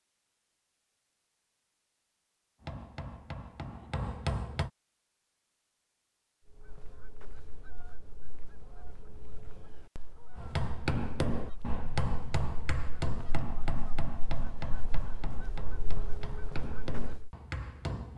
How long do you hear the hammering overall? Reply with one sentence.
You can hear the hammering for 10 seconds altogether.